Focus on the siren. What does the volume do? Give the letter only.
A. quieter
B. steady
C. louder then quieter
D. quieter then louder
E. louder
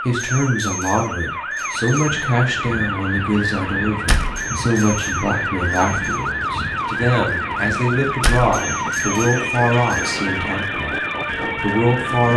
B.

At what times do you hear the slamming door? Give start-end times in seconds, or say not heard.
4.0-4.5, 8.2-8.6.